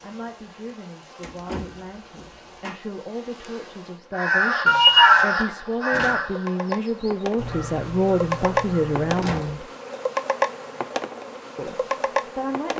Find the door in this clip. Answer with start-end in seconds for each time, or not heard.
1.2-2.8, 5.8-6.2, 9.2-9.6.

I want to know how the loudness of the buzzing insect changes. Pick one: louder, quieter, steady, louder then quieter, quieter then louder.
louder.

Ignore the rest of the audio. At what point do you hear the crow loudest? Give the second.
5 s.